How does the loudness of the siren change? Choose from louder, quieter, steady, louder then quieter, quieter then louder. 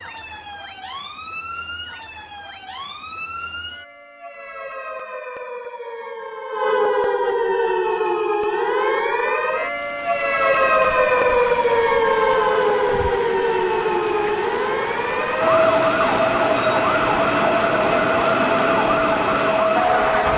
louder.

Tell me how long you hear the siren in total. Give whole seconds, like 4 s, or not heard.
20 s.